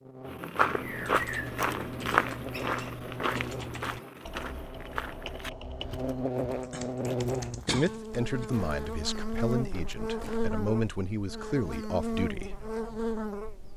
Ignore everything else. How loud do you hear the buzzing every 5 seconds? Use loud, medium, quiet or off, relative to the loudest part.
medium, loud, loud.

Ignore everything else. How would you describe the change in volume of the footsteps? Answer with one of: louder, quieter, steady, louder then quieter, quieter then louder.
quieter.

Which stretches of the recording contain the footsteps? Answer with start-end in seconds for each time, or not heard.
0.2-10.6.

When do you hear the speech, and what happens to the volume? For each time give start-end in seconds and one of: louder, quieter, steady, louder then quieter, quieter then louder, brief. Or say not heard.
7.7-12.6 quieter then louder.